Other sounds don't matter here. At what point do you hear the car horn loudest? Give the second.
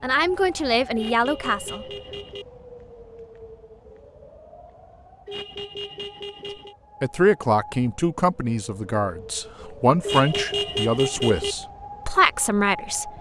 11 s.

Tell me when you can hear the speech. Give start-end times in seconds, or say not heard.
0.0-1.9, 7.0-13.1.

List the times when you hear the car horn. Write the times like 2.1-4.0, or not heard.
0.9-2.5, 5.2-6.8, 10.0-11.6.